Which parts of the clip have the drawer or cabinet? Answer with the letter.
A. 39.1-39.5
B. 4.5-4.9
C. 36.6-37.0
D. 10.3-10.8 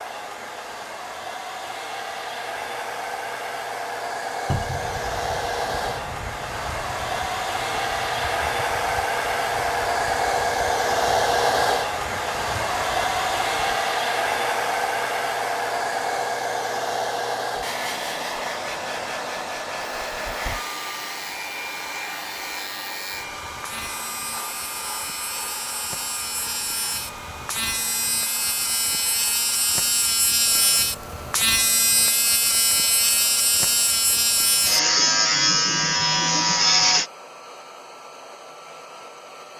B.